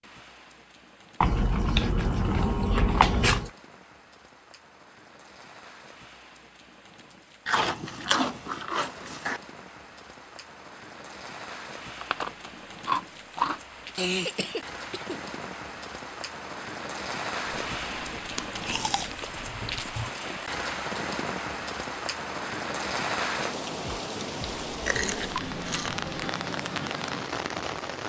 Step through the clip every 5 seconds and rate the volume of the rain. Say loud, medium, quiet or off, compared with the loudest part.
quiet, quiet, medium, loud, loud, loud.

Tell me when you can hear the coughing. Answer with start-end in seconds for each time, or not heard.
13.9-15.2.